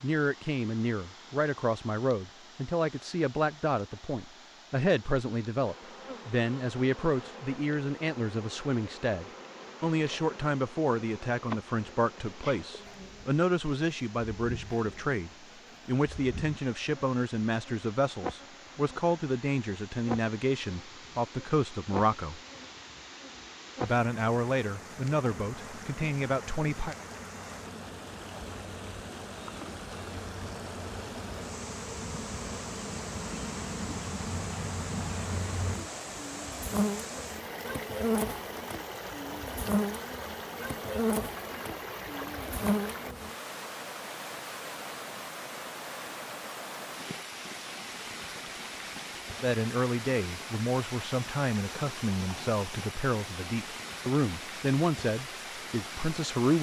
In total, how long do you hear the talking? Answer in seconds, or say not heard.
33 s.